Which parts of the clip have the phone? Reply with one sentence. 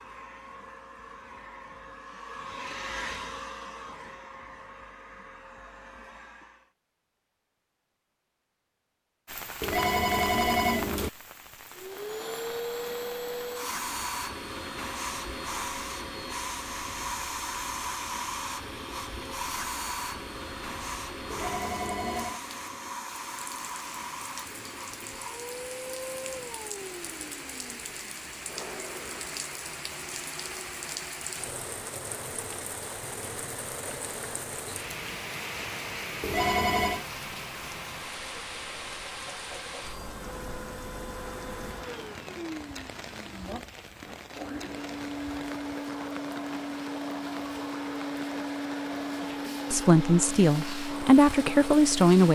The phone can be heard from 9.6 to 11.1 s, from 21.3 to 22.4 s and from 36.2 to 37.0 s.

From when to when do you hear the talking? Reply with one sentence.
You can hear the talking from 49.7 to 52.2 s.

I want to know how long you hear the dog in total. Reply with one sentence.
You can't hear the dog here.